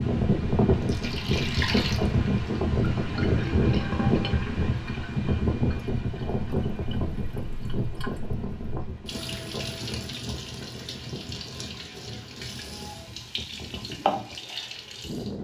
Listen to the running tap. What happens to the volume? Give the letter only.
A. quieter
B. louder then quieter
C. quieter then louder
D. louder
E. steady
C.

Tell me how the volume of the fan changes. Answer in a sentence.
The volume of the fan goes down.